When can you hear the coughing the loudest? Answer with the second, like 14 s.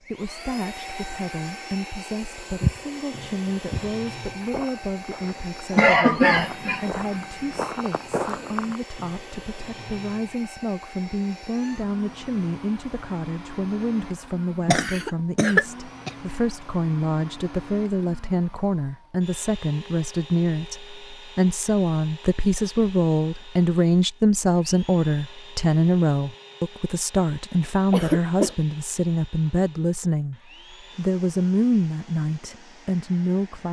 6 s.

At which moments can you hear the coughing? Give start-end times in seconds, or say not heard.
5.8-6.8, 14.7-16.1, 27.9-28.6.